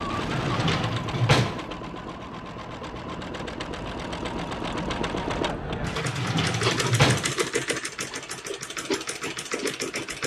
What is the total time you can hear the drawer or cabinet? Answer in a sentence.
The drawer or cabinet can be heard for 3 seconds in total.